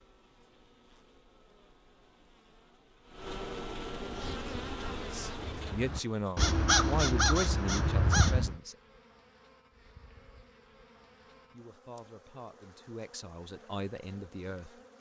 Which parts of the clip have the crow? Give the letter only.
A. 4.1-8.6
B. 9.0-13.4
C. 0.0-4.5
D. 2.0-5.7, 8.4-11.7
A.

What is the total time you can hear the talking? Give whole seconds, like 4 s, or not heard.
7 s.